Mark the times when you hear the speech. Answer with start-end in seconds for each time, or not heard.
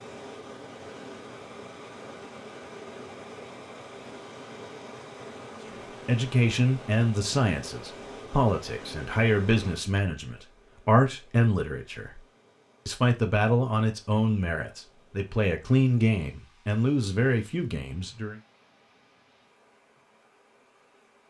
5.7-12.2, 12.8-18.4.